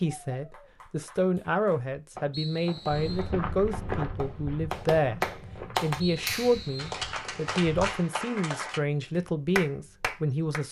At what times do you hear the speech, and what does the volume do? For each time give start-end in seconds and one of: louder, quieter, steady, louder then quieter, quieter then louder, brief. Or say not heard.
0.0-10.6 steady.